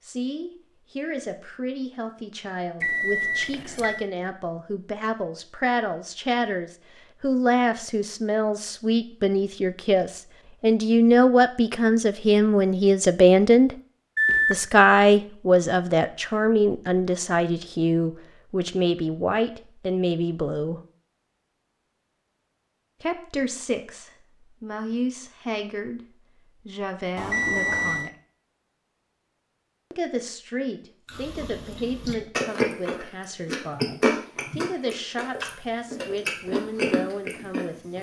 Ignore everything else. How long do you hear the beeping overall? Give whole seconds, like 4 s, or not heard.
3 s.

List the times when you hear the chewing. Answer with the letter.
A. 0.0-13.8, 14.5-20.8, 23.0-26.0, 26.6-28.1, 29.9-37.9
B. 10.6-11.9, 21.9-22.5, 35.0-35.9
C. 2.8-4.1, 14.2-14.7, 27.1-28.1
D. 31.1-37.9
D.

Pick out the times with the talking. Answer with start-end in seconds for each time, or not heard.
0.0-13.8, 14.5-20.8, 23.0-26.0, 26.6-28.1, 29.9-37.9.